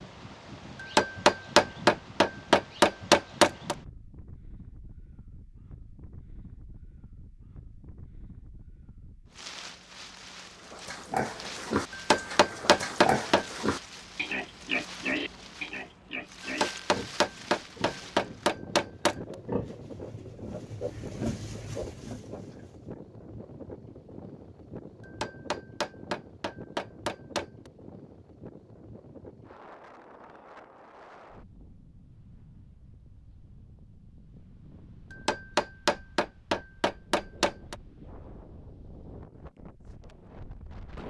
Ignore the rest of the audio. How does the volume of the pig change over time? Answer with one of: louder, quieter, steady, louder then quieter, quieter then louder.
quieter.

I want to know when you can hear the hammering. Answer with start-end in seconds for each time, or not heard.
0.8-3.8, 11.9-13.4, 16.4-19.1, 25.1-27.4, 35.1-37.8.